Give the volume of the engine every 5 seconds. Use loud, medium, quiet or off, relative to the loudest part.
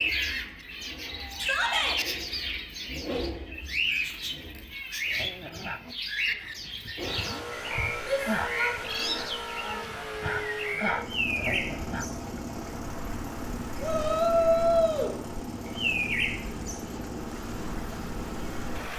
medium, loud, loud, loud.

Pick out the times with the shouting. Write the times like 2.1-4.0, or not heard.
1.4-2.0, 8.0-10.0, 13.8-15.2.